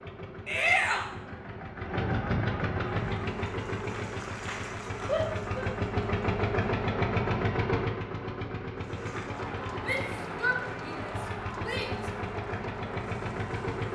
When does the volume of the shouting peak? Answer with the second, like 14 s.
1 s.